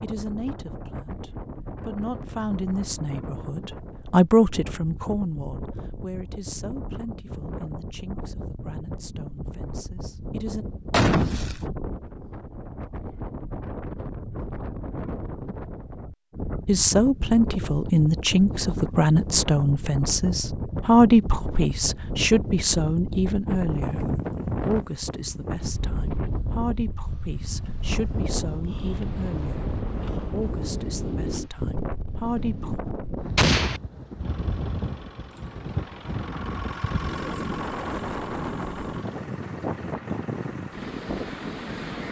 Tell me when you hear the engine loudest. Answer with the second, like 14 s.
37 s.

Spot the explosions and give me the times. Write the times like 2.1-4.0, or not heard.
10.9-11.7, 33.4-33.8.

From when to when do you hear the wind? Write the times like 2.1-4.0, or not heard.
0.0-42.0.